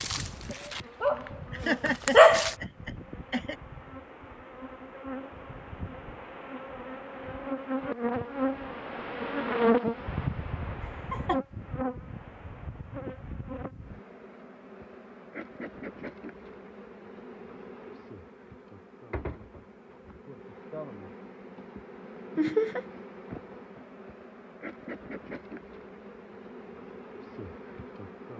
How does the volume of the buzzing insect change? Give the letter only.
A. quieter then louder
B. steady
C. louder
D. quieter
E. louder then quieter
E.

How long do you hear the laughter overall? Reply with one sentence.
You can hear the laughter for 3 seconds altogether.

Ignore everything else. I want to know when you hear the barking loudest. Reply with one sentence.
The volume of the barking peaks at 2 seconds.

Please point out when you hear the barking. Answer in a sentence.
The barking can be heard from 0.0 to 2.5 s.